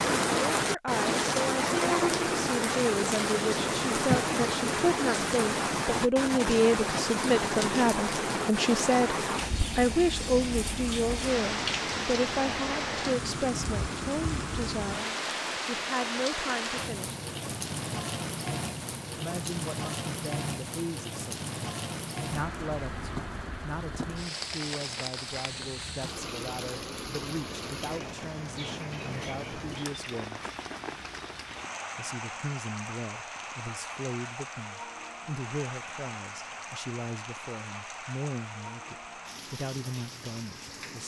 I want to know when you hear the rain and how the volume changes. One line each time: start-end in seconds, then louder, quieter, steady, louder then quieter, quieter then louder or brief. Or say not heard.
0.0-41.0 quieter.